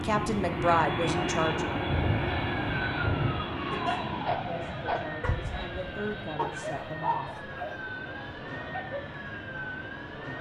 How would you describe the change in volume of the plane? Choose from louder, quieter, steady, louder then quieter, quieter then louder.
quieter.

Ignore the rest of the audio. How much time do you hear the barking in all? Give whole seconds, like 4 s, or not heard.
5 s.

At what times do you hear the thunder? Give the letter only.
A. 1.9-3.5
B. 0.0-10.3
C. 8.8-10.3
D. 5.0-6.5
A.